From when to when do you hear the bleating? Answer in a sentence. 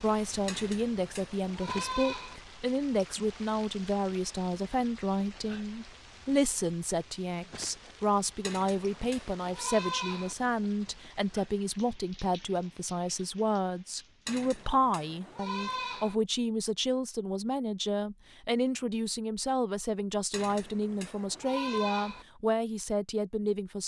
You can hear the bleating from 0.5 to 2.4 s, from 8.4 to 10.3 s, from 14.2 to 16.1 s and from 20.3 to 22.2 s.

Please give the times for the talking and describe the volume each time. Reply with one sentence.
You can hear the talking from 0.0 to 23.8 s, at a steady volume.